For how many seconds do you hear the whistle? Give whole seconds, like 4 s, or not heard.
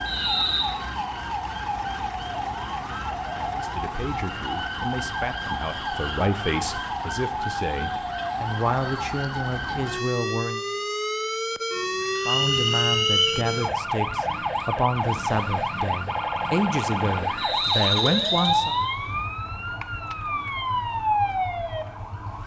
3 s.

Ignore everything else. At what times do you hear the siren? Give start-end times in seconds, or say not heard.
0.0-22.4.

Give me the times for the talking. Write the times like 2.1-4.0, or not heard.
3.5-10.6, 12.2-18.8.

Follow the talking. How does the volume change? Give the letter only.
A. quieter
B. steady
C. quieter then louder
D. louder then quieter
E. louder
E.